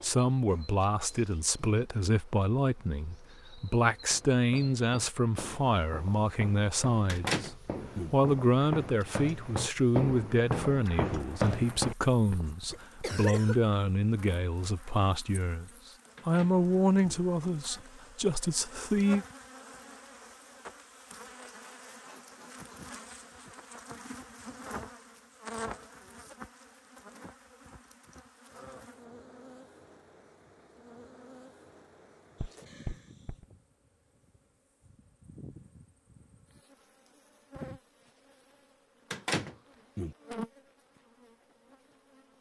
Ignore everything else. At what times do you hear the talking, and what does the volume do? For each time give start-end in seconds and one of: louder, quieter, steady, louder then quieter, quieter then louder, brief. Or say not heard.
0.0-19.2 steady.